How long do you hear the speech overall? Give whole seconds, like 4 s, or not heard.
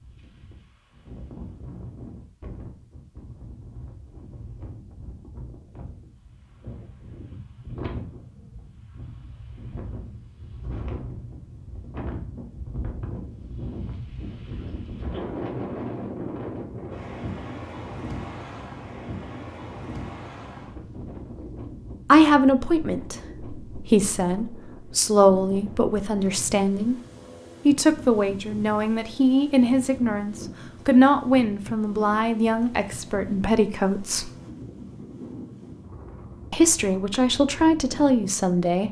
14 s.